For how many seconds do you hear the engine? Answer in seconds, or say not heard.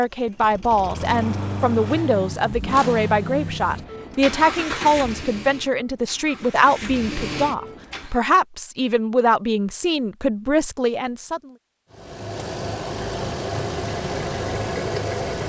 12 s.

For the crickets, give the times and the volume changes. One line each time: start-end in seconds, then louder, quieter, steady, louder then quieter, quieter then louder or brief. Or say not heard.
not heard.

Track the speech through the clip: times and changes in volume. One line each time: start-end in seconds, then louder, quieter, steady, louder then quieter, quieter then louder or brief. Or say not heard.
0.0-11.5 steady.